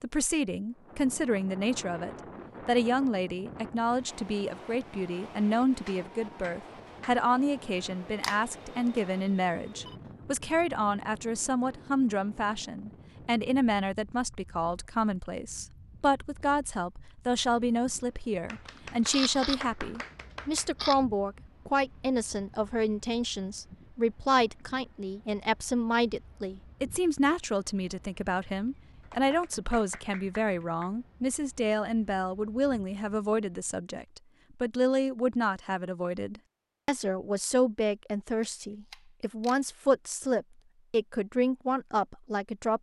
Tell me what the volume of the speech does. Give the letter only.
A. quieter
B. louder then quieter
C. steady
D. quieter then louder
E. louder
C.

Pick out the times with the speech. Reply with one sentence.
You can hear the speech from 0.0 to 42.7 s.